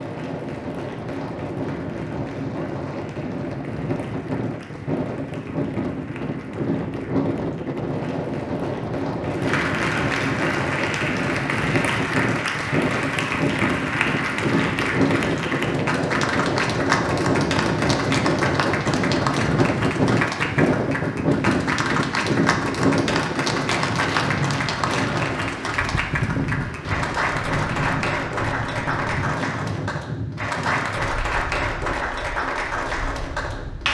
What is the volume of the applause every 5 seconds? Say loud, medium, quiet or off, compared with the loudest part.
quiet, medium, loud, loud, loud, loud, loud.